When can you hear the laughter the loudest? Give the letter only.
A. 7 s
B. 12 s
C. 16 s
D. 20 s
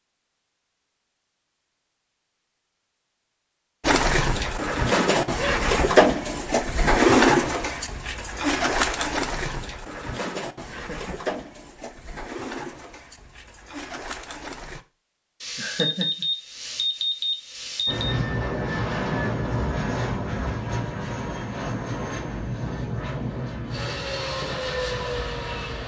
C.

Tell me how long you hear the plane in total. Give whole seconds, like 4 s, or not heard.
8 s.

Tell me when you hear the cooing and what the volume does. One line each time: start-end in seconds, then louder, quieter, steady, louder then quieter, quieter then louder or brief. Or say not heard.
3.8-14.8 quieter.